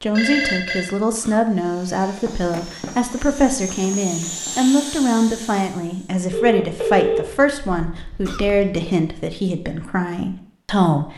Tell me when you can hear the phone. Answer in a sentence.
You can hear the phone from 0.1 to 0.8 s and from 6.3 to 8.9 s.